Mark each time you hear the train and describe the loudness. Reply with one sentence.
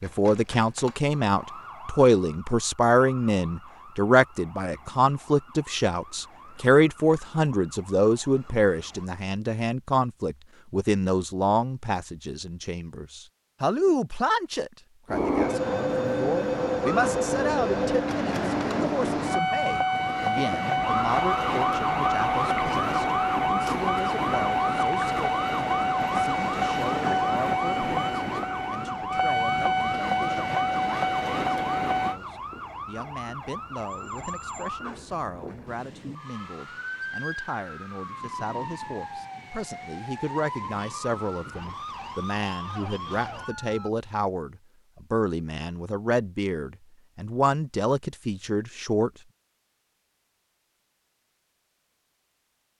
The train can be heard from 15.1 to 32.2 s, at a steady volume.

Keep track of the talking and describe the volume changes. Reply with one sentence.
The volume of the talking goes down, then up.